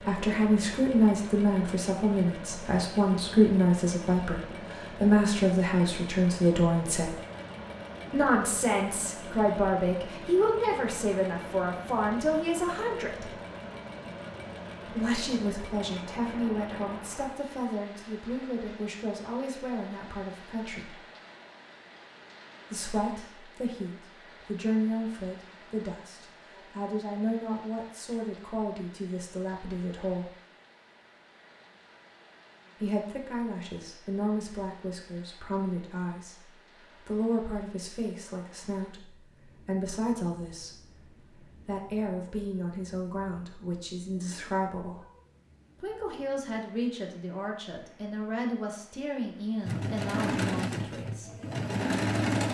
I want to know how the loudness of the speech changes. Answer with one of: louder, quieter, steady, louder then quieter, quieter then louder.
quieter.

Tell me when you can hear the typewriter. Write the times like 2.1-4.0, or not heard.
not heard.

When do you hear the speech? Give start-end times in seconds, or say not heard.
0.0-7.1, 8.1-13.3, 14.8-20.9, 22.7-30.3, 32.8-45.0, 45.8-51.4.